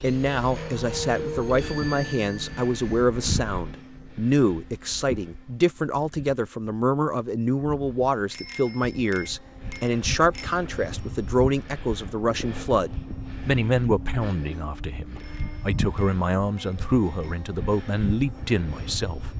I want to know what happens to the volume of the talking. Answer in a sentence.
The loudness of the talking stays about the same.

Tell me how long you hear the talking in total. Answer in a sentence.
The talking can be heard for 19 seconds in total.